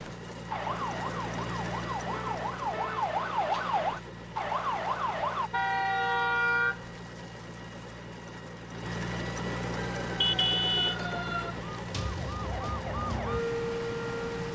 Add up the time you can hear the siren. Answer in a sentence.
The siren can be heard for 10 seconds in total.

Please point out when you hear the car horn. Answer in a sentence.
You can hear the car horn from 2.1 to 3.1 s, from 5.5 to 7.0 s and from 10.2 to 10.9 s.